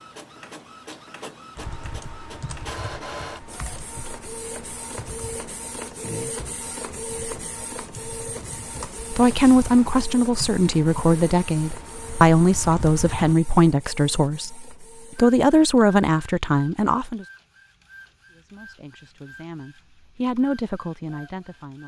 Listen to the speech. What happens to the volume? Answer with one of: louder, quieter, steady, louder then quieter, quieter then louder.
quieter.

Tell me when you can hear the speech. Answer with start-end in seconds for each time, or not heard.
9.1-17.2, 18.3-21.8.